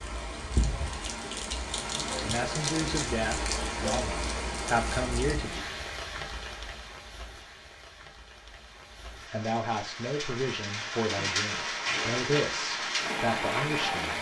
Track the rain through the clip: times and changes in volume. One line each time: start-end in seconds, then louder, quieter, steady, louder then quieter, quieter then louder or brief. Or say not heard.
0.0-14.1 quieter then louder.